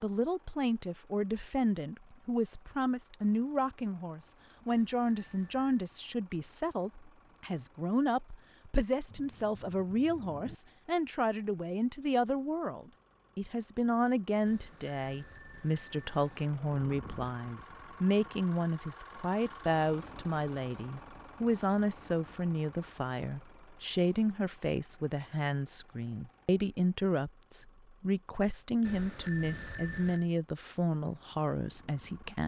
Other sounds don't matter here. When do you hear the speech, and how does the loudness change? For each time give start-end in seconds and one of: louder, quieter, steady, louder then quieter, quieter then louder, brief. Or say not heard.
0.0-32.4 steady.